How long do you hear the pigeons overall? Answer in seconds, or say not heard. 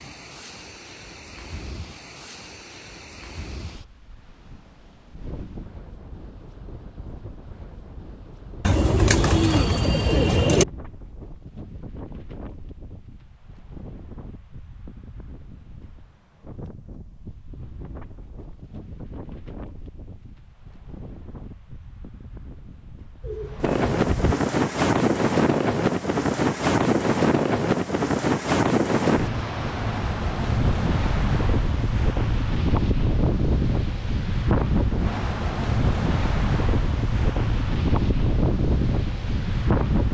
3 s.